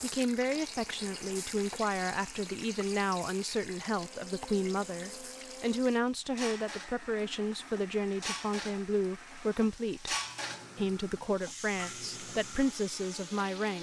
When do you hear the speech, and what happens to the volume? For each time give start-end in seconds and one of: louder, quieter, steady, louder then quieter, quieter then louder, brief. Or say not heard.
0.0-10.2 steady
10.8-13.7 brief.